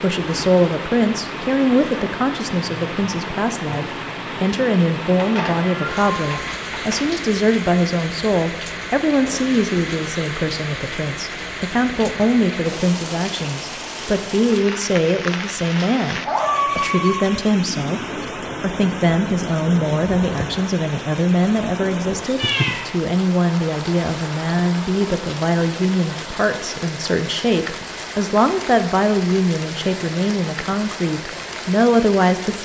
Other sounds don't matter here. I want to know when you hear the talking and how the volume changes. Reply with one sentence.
You can hear the talking from 0.0 to 32.5 s, at a steady volume.